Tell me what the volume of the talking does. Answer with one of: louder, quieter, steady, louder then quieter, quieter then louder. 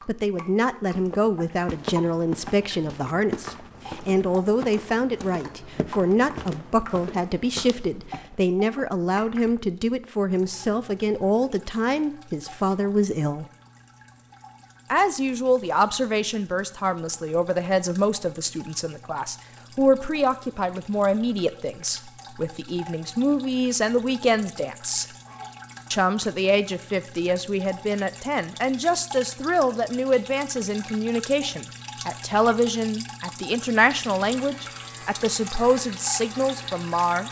steady.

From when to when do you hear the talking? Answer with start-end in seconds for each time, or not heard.
0.1-13.4, 14.9-25.1, 25.9-37.2.